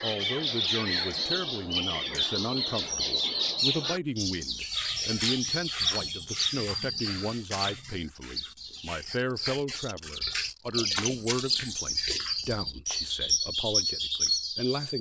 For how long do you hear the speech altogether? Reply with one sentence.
You can hear the speech for 15 seconds altogether.